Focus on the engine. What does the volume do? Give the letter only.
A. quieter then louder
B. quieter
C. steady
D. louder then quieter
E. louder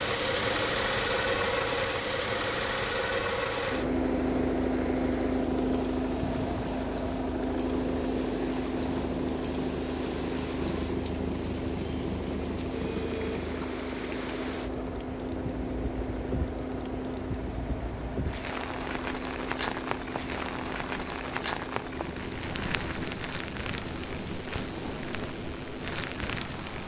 B.